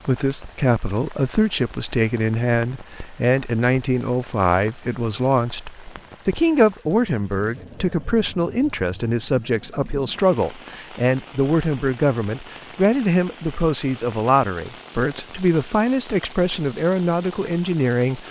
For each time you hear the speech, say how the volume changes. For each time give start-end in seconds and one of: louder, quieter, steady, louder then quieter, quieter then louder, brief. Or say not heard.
0.0-18.2 steady.